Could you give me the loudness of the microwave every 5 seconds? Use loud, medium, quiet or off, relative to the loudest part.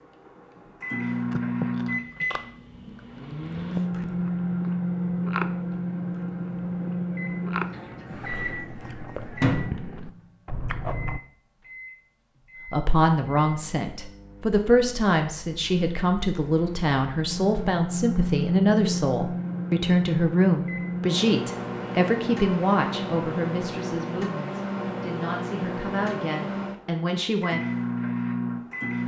loud, loud, quiet, loud, loud, loud.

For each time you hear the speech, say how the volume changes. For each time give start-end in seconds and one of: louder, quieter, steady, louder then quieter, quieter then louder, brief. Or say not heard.
12.7-27.6 quieter.